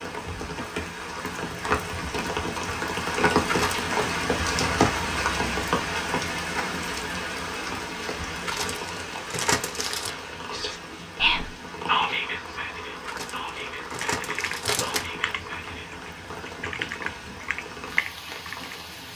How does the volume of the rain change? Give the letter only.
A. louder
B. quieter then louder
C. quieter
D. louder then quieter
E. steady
C.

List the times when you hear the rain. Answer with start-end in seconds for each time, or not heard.
0.0-19.1.